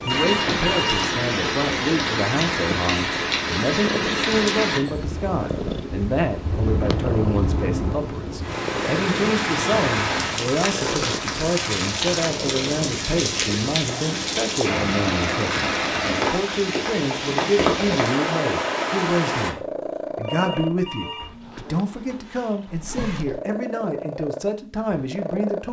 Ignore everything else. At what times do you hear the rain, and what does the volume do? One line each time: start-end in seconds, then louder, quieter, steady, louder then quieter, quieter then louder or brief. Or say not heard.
0.0-19.6 steady.